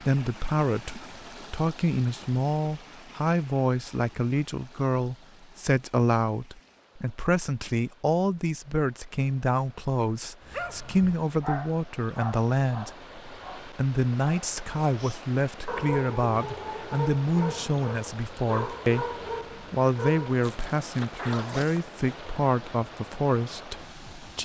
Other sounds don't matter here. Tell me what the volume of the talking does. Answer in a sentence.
The volume of the talking stays about the same.